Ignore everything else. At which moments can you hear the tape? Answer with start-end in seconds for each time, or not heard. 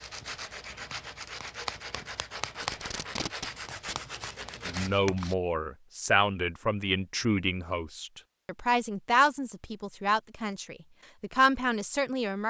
2.6-4.0.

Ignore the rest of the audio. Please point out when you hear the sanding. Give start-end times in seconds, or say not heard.
0.0-5.3.